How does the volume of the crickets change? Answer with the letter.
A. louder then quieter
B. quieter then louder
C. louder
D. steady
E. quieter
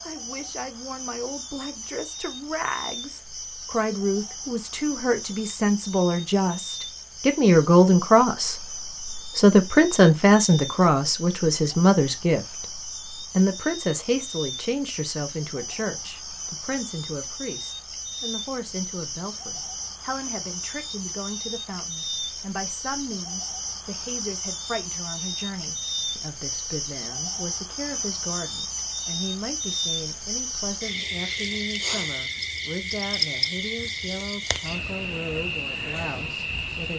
C.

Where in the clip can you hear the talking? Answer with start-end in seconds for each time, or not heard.
0.0-36.9.